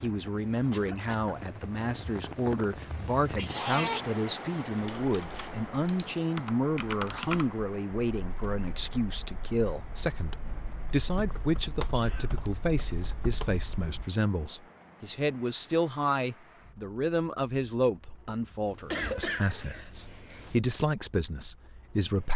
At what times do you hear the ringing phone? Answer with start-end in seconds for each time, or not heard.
not heard.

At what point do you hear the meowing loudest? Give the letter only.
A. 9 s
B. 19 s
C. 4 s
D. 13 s
C.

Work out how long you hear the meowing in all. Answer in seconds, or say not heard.
3 s.